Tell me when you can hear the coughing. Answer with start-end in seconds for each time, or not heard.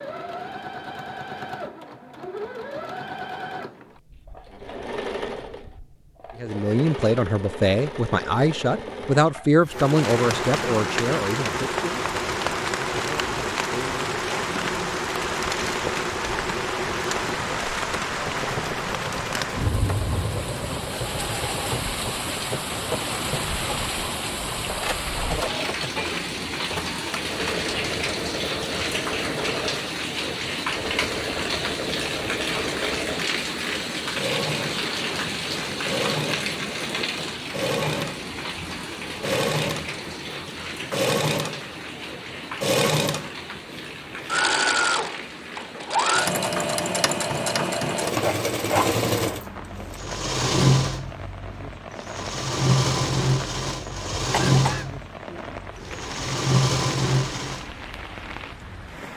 54.3-55.5.